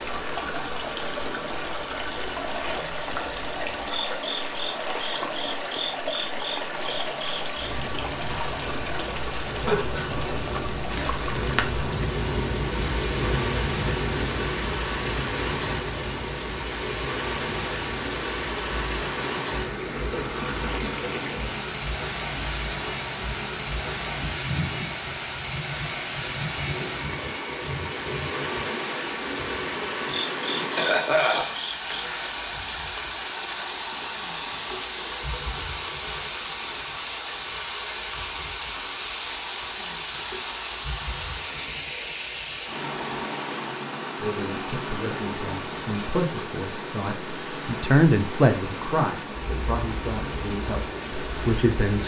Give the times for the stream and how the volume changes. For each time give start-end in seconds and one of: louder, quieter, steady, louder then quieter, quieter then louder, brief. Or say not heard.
0.0-52.0 steady.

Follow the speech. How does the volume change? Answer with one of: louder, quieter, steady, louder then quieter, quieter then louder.
louder then quieter.